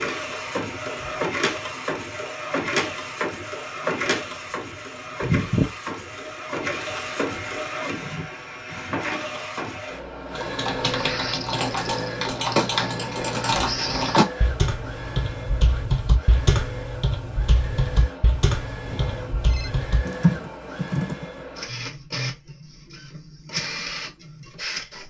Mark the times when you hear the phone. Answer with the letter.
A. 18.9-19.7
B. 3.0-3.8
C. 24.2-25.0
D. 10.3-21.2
A.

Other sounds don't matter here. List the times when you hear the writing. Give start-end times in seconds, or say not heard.
not heard.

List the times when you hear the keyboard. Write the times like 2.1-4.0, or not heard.
10.3-21.2.